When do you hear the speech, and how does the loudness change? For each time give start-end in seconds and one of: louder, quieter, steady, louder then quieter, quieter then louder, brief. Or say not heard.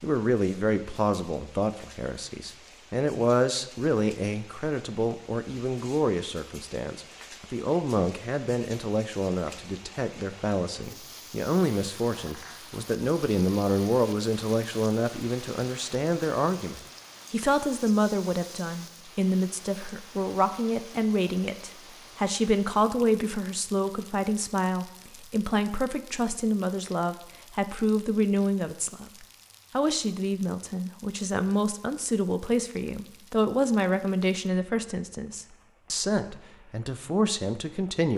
0.0-38.1 steady.